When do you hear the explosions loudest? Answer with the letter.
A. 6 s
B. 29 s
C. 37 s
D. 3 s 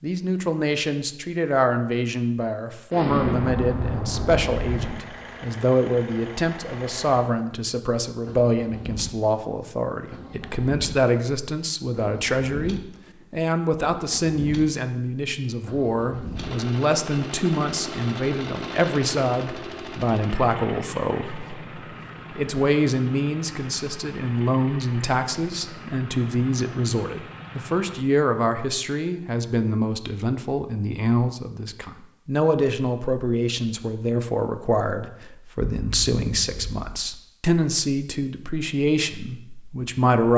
D.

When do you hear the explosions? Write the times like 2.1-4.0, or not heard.
2.9-4.9, 35.6-36.9.